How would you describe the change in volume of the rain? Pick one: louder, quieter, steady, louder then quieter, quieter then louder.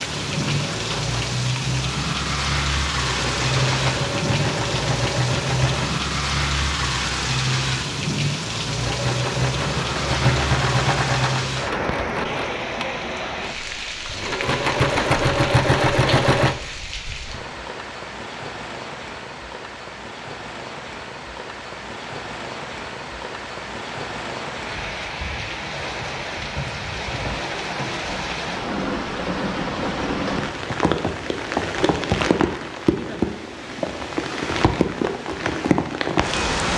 quieter then louder.